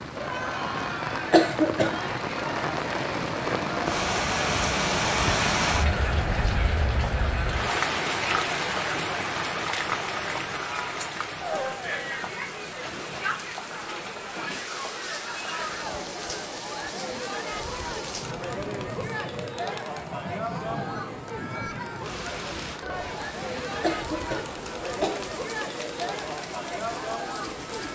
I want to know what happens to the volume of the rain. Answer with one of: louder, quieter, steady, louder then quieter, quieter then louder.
quieter.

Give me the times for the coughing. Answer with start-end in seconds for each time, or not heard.
1.3-1.9, 23.8-25.2.